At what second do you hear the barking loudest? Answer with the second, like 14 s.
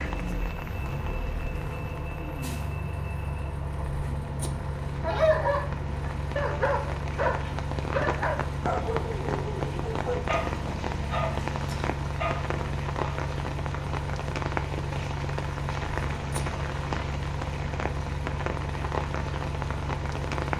5 s.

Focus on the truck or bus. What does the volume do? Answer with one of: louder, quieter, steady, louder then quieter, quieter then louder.
steady.